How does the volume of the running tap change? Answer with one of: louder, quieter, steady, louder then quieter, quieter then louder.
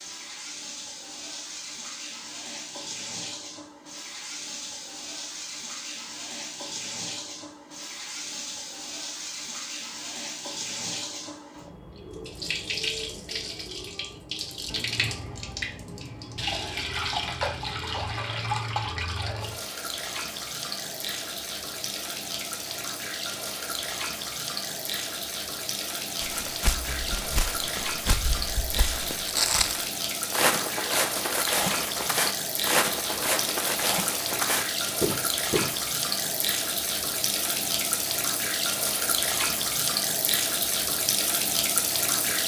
louder.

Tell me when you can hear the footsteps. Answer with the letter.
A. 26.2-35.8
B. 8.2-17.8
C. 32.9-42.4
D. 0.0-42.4
A.